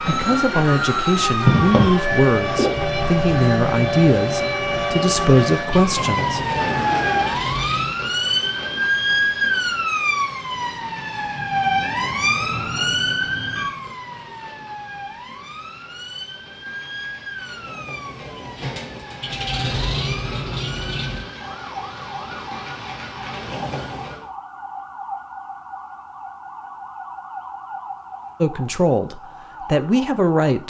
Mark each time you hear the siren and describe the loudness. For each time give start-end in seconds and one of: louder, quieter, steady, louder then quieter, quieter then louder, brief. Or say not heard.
0.0-30.6 quieter.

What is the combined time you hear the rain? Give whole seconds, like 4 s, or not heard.
24 s.